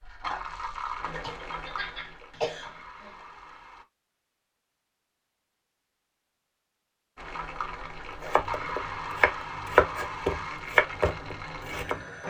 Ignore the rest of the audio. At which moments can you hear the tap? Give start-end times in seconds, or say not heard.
0.0-3.9, 7.2-12.2.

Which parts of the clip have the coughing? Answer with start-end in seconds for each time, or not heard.
1.1-3.2.